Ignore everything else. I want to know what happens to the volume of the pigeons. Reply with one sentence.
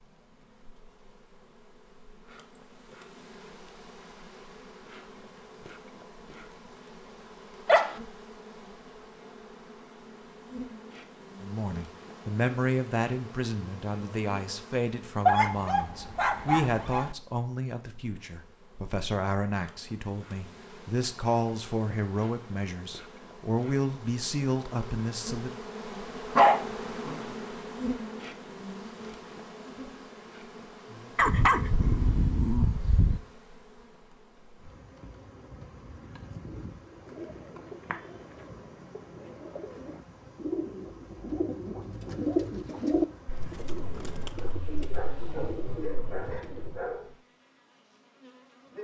The volume of the pigeons goes up, then down.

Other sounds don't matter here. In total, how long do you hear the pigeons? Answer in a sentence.
You can hear the pigeons for 10 seconds altogether.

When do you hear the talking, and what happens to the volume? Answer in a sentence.
You can hear the talking from 11.4 to 25.6 s, at a steady volume.